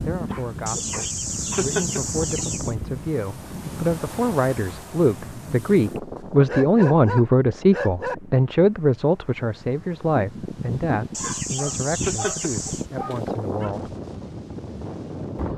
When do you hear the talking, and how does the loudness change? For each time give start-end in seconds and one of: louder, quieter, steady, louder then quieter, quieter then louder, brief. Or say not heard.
0.0-13.9 louder then quieter.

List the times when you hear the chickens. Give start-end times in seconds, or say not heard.
0.7-2.8, 11.1-12.8.